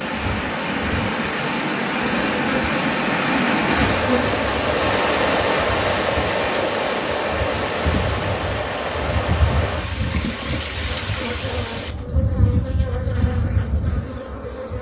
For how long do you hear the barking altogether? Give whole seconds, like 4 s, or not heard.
not heard.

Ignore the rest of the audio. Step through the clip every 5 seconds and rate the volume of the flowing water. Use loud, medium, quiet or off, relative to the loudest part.
loud, loud, medium.